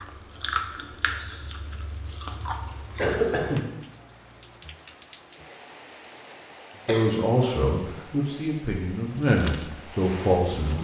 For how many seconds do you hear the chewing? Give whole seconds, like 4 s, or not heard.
5 s.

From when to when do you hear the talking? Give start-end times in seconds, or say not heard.
6.8-10.7.